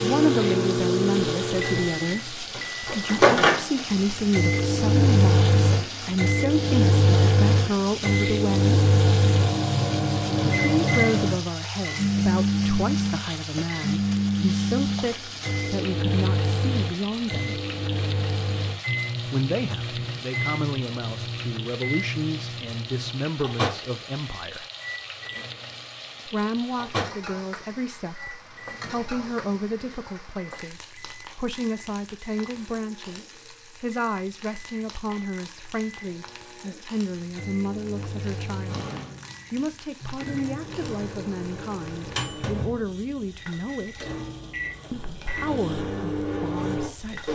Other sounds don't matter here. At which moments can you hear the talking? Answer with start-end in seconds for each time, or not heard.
0.0-8.9, 10.4-17.6, 19.2-24.6, 26.2-38.9, 39.5-44.1, 44.9-47.3.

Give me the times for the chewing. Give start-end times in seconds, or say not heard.
not heard.